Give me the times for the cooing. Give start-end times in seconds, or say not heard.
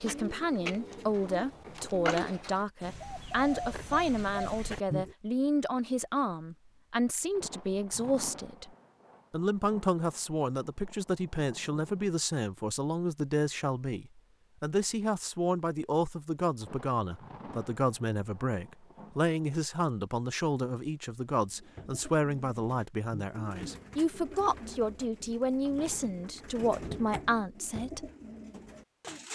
0.0-5.2, 21.4-29.2.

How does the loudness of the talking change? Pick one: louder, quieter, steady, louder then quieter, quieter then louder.
steady.